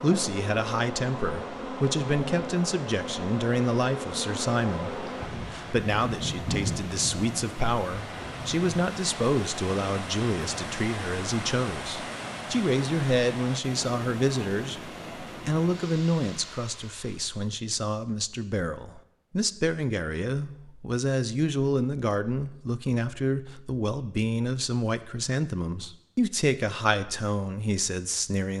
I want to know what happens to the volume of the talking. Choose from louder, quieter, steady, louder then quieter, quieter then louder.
steady.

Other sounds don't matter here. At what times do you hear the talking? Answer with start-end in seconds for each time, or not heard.
0.0-28.5.